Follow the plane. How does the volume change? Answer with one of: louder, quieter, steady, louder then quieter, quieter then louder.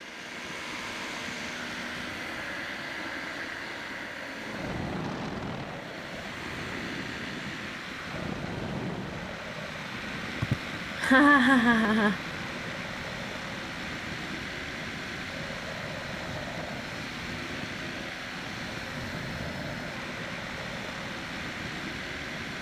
steady.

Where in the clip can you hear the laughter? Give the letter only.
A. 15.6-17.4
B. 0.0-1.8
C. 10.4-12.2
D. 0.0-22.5
C.